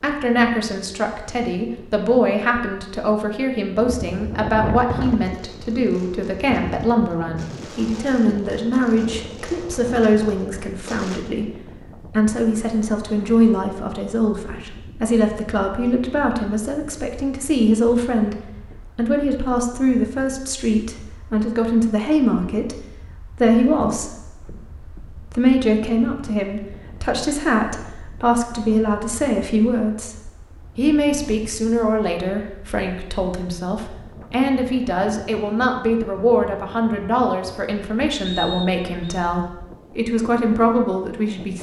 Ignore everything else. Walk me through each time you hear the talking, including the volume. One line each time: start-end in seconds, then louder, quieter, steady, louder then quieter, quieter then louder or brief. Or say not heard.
0.0-41.5 steady.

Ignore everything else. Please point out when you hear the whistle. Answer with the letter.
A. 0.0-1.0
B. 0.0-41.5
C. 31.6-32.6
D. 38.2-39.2
D.